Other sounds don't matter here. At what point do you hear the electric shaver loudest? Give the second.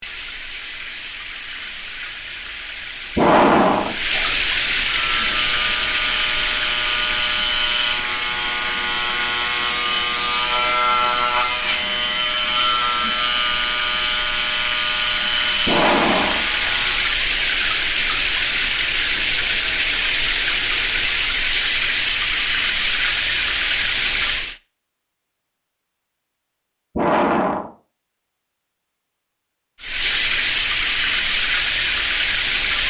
11 s.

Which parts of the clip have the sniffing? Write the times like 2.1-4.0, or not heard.
3.1-4.2, 15.7-16.8, 26.9-27.7.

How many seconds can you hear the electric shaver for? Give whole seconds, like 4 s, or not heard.
12 s.